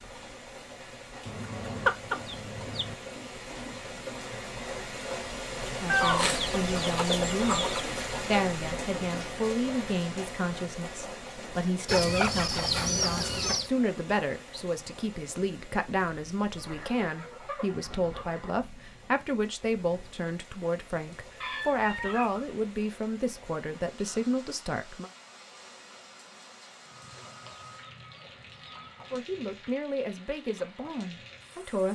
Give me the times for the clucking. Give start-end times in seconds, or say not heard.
1.2-3.0, 5.8-7.8, 11.8-13.7, 16.6-18.6, 21.4-22.4, 26.9-29.2.